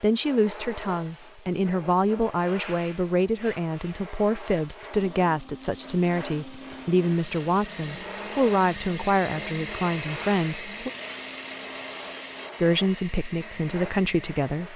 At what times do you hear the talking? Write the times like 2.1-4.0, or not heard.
0.0-10.9, 12.6-14.7.